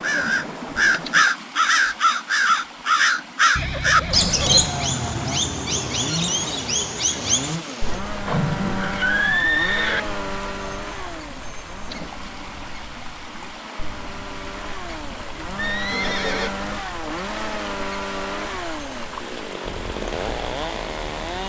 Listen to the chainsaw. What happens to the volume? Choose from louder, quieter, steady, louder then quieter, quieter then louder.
quieter then louder.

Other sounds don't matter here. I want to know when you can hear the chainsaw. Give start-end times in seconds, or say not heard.
4.5-21.4.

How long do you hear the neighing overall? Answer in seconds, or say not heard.
4 s.